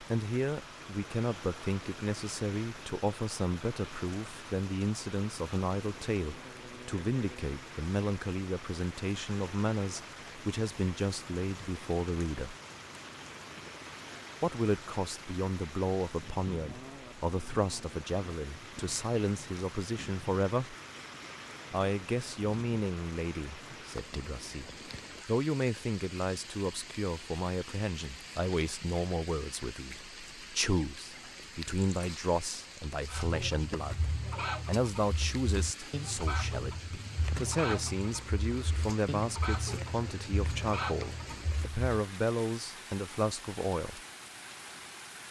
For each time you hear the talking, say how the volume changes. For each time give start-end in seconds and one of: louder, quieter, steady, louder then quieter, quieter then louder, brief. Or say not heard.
0.0-12.6 steady
14.4-20.8 steady
21.7-44.0 steady.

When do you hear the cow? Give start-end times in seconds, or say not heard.
not heard.